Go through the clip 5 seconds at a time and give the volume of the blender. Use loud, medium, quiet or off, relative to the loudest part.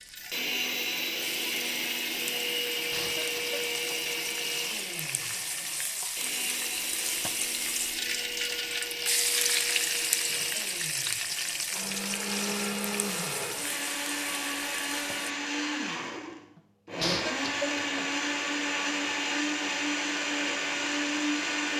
loud, medium, medium, loud, loud.